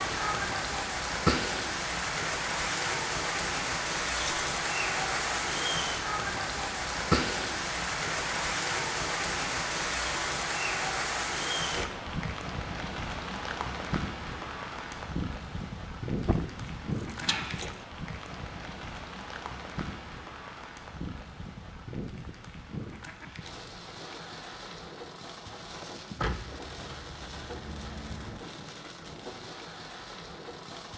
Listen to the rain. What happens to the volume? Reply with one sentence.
The volume of the rain goes down.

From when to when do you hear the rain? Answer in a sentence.
The rain can be heard from 0.0 to 30.9 s.